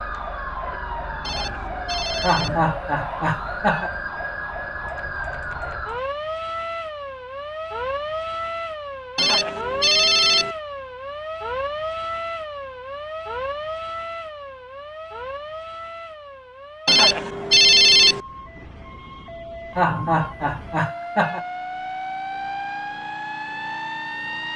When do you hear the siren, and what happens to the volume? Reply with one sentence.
The siren can be heard from 0.0 to 24.5 s, getting quieter then louder.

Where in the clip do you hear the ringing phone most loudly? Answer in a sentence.
The volume of the ringing phone peaks at 18 seconds.